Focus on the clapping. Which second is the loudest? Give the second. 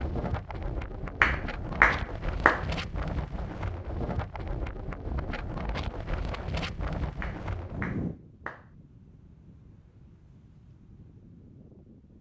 2 s.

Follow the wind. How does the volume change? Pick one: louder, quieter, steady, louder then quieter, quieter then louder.
quieter.